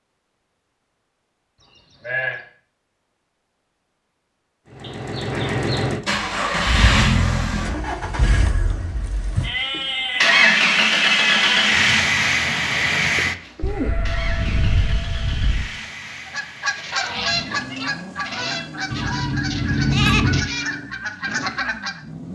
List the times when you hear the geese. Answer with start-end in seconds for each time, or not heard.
16.2-22.0.